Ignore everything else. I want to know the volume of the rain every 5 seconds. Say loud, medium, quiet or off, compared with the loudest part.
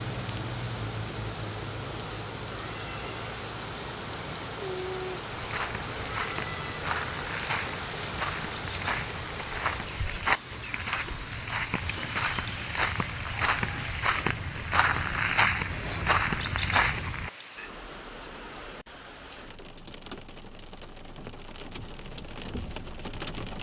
loud, loud, medium, medium, medium.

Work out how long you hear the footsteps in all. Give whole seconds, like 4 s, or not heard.
12 s.